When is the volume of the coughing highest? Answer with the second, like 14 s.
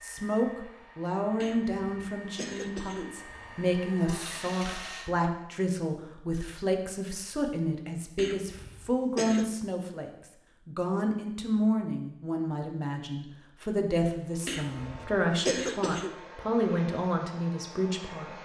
16 s.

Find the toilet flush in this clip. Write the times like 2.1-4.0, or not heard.
4.0-5.1.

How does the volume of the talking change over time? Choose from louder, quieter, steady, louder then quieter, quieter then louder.
steady.